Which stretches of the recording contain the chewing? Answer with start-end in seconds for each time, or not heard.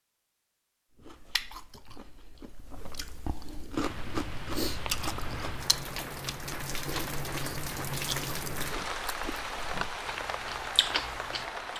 0.9-11.7.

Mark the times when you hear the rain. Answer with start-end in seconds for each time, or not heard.
3.7-11.7.